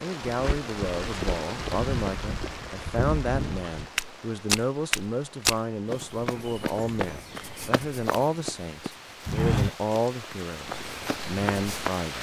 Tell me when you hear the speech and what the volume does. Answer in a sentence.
The speech can be heard from 0.0 to 12.1 s, at a steady volume.